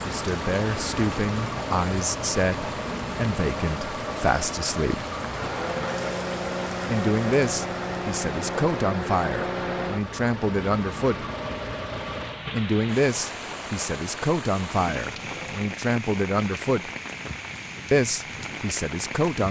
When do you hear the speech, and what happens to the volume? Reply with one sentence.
The speech can be heard from 0.1 to 5.0 s, at a steady volume; from 6.8 to 11.2 s, getting quieter then louder; from 12.5 to 16.9 s, getting quieter then louder; and briefly from 17.9 to 19.4 s.